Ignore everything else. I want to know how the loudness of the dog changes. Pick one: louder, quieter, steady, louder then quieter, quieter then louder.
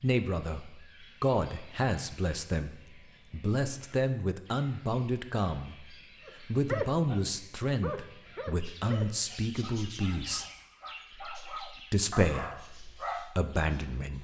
quieter then louder.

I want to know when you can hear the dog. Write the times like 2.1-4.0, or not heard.
6.2-13.3.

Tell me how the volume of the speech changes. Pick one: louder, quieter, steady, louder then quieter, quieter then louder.
steady.